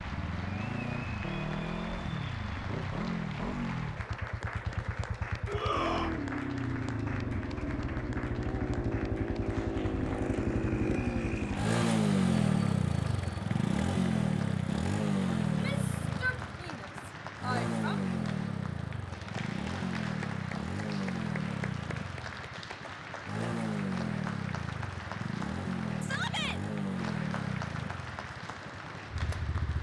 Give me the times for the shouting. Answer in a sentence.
The shouting can be heard from 5.5 to 6.1 s, from 15.4 to 17.9 s and from 26.0 to 26.6 s.